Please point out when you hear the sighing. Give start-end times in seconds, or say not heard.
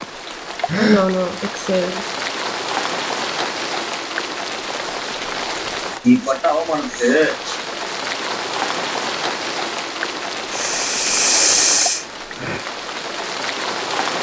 0.2-2.0, 6.0-7.6, 10.5-12.7.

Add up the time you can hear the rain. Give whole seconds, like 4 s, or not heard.
14 s.